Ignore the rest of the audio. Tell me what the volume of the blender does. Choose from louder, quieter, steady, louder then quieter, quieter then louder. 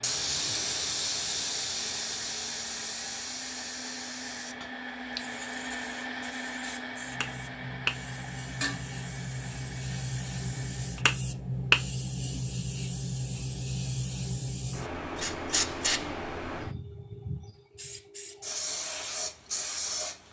louder then quieter.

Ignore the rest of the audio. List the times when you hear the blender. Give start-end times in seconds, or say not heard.
0.0-11.2.